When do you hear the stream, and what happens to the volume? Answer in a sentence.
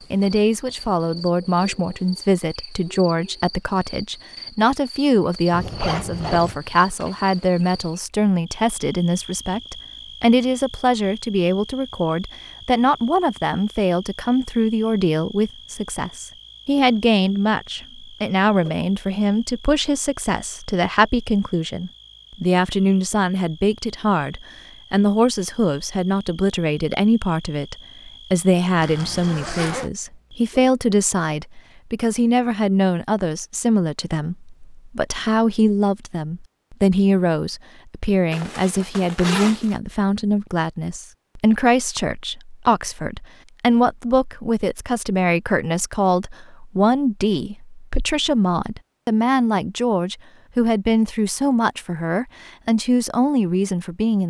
The stream can't be heard in this clip.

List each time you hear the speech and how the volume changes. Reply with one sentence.
The speech can be heard from 0.1 to 54.2 s, at a steady volume.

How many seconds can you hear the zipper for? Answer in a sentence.
You can hear the zipper for 4 seconds altogether.